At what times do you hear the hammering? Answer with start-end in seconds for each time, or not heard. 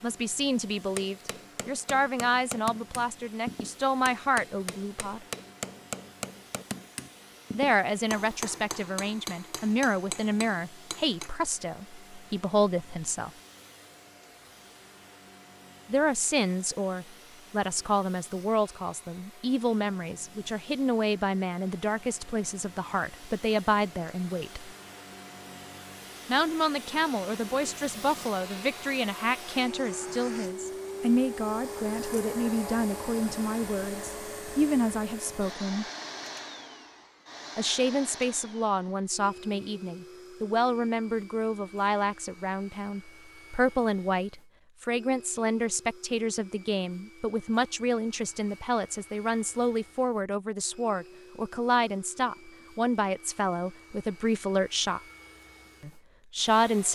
0.9-11.3.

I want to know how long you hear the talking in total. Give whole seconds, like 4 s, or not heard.
48 s.